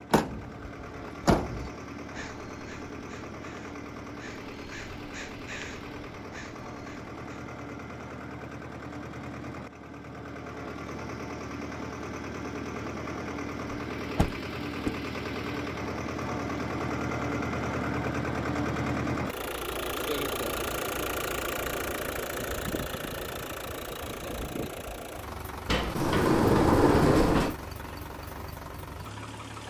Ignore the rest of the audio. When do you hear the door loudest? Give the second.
27 s.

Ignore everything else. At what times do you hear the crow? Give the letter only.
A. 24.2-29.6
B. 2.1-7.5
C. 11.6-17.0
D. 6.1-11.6
B.